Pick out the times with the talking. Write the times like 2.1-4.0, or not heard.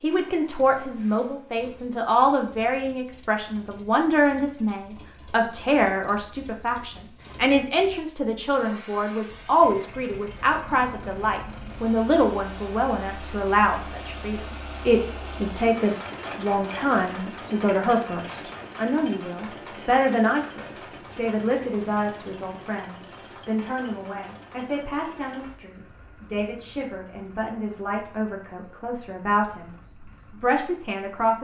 0.0-31.3.